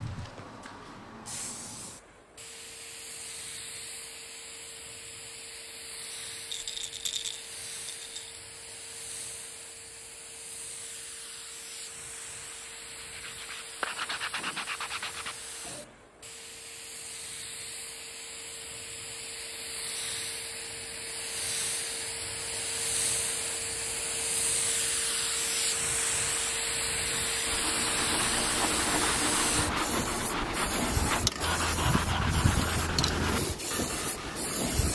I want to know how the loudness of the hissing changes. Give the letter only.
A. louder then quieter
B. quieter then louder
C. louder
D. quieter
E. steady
C.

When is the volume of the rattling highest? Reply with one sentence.
The loudest moment of the rattling is at 7 seconds.